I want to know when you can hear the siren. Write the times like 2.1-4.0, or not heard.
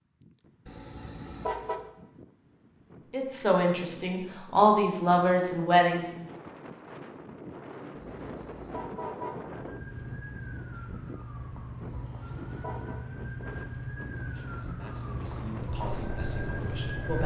9.5-17.2.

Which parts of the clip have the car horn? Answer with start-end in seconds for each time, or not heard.
0.7-1.8, 8.0-9.4, 11.8-13.0.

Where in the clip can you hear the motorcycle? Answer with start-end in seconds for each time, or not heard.
15.6-17.2.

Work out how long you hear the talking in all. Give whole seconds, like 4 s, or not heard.
6 s.